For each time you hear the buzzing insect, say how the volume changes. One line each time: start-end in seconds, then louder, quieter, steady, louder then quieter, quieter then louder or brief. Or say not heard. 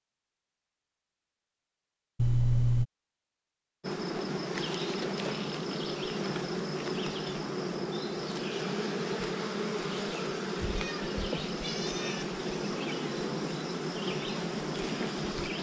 3.8-15.5 steady.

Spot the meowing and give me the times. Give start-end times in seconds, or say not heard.
2.1-2.9, 10.8-12.2.